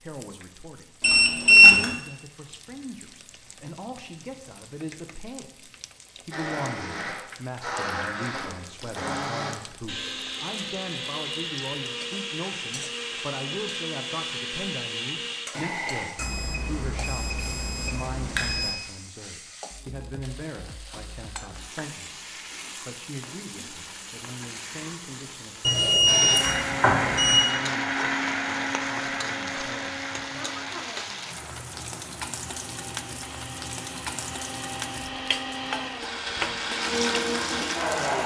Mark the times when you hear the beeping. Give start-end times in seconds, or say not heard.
1.0-1.9, 16.1-18.8, 25.6-27.4.